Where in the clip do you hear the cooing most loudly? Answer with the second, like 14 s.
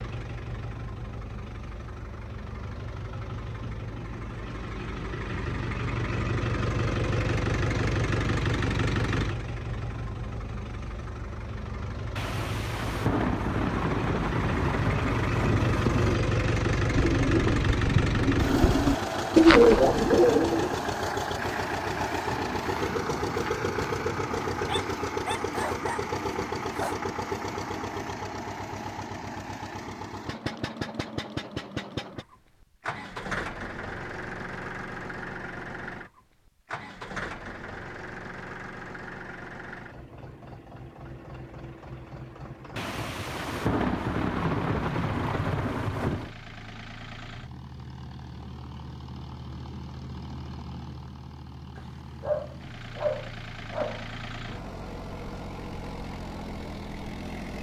20 s.